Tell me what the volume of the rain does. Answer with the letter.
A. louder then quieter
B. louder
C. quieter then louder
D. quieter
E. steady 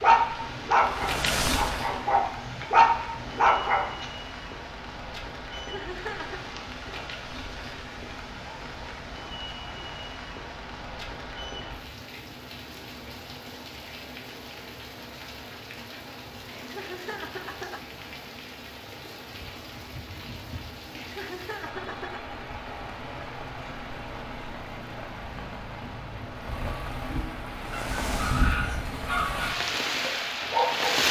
C.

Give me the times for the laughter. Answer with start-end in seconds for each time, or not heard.
5.5-6.5, 16.6-17.8, 20.9-22.2.